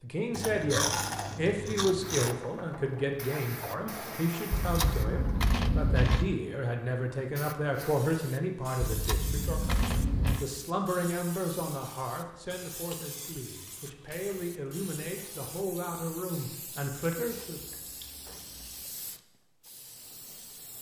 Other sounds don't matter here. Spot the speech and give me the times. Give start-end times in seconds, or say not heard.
0.0-17.6.